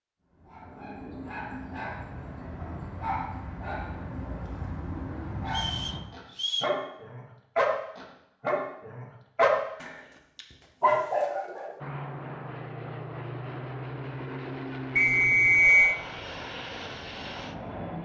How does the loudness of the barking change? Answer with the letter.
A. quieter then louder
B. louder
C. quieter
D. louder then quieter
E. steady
B.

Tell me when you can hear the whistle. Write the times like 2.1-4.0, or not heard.
5.5-6.8, 14.9-15.9.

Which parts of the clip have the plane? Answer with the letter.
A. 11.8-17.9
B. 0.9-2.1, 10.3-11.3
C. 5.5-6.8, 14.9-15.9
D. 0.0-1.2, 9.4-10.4
A.